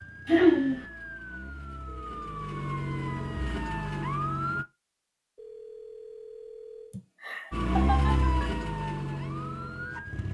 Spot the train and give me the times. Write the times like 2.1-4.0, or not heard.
not heard.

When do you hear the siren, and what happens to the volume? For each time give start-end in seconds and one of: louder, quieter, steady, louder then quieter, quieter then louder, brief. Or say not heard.
0.0-4.7 louder
7.5-10.2 brief.